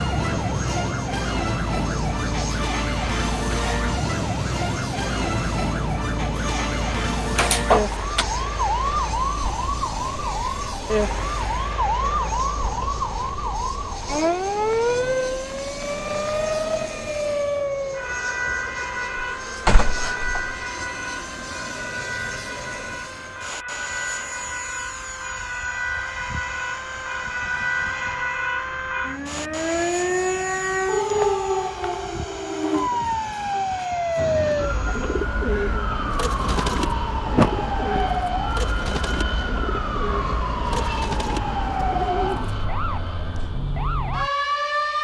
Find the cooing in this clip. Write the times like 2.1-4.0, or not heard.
34.1-42.6.